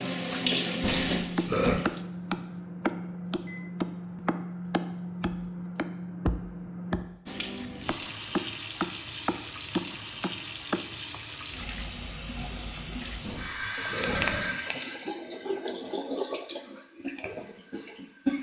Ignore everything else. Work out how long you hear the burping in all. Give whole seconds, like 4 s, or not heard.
2 s.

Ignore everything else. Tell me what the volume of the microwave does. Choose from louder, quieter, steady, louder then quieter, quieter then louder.
steady.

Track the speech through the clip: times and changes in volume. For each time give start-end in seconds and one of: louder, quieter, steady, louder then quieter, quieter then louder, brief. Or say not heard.
not heard.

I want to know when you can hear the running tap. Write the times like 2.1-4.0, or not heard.
0.0-2.0, 7.2-18.3.